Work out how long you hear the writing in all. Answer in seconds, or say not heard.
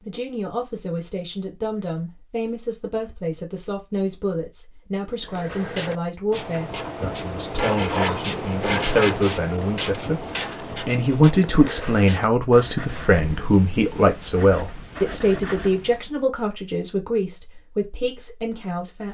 11 s.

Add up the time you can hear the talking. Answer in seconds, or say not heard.
19 s.